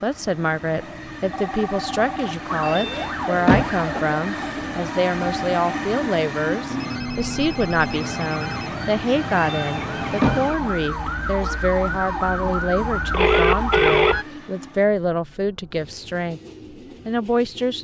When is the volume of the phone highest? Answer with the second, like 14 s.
14 s.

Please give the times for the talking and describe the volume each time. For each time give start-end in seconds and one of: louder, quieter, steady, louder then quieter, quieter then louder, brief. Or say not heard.
0.0-16.4 steady
17.1-17.7 brief.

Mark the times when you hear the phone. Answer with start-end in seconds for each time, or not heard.
1.3-2.4, 6.7-8.7, 13.1-14.2.